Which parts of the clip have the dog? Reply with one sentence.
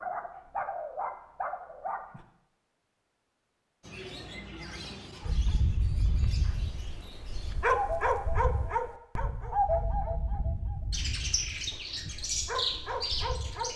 You can hear the dog from 0.0 to 2.2 s and from 5.2 to 13.7 s.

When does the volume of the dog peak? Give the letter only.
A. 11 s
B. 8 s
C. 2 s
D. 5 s
B.